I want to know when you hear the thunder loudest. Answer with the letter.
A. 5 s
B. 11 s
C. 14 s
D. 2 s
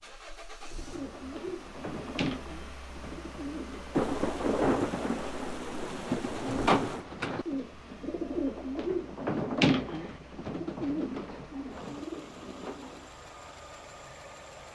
A.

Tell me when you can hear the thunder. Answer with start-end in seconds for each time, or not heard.
4.0-7.0.